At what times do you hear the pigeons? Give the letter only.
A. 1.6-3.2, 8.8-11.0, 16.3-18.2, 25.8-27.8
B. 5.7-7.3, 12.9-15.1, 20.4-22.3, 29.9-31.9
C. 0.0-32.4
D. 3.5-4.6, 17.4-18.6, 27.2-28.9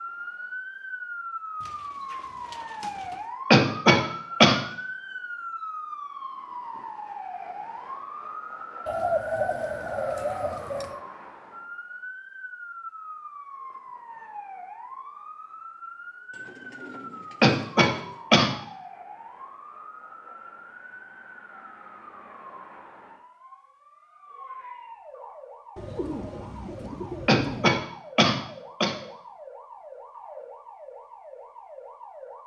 A.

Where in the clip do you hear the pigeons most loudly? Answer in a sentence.
The volume of the pigeons peaks at 9 seconds.